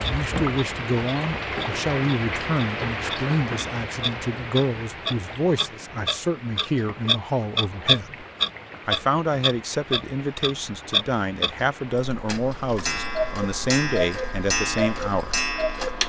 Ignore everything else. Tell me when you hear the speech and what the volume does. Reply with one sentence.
You can hear the speech from 0.0 to 8.2 s, at a steady volume; and from 8.8 to 15.4 s, at a steady volume.